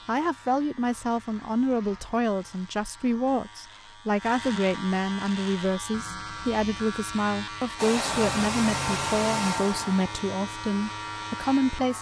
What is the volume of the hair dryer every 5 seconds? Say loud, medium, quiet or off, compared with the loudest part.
off, loud, quiet.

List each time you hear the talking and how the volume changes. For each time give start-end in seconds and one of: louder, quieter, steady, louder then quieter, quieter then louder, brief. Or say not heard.
0.1-11.9 steady.